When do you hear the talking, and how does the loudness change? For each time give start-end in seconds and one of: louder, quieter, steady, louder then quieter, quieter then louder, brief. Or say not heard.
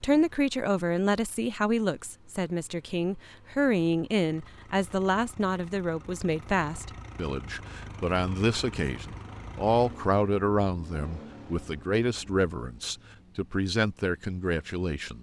0.0-15.1 steady.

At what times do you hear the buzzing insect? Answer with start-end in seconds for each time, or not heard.
not heard.